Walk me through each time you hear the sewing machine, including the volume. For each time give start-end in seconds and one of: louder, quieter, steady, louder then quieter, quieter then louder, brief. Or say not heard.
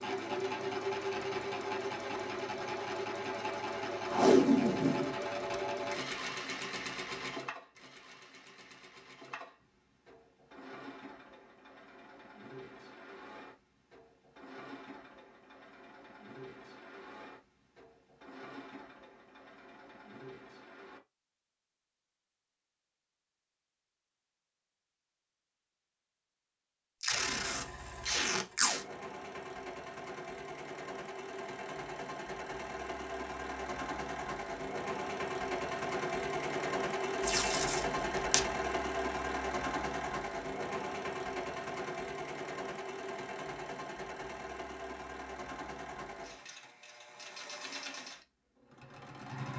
0.0-21.0 quieter
27.1-49.5 louder then quieter.